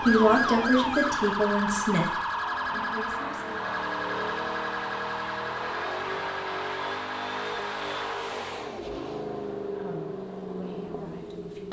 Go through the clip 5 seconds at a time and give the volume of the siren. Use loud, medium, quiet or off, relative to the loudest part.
loud, medium, off.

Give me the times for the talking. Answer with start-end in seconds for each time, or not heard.
0.0-3.6, 9.7-11.6.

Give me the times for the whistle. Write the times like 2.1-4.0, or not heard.
not heard.